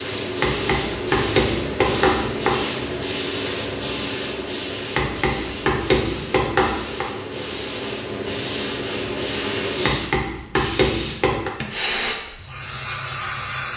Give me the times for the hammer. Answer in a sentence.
You can hear the hammer from 0.4 to 2.6 s, from 5.0 to 7.0 s and from 9.8 to 11.5 s.